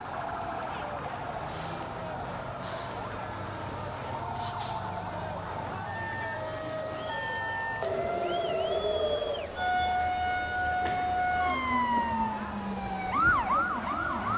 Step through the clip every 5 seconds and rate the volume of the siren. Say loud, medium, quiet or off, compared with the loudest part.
medium, loud, loud.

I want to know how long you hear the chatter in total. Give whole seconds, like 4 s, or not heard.
14 s.